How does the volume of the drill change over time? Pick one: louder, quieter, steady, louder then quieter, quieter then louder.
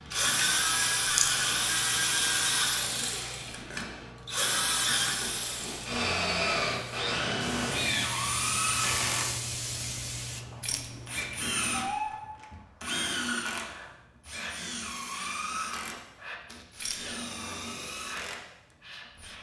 quieter.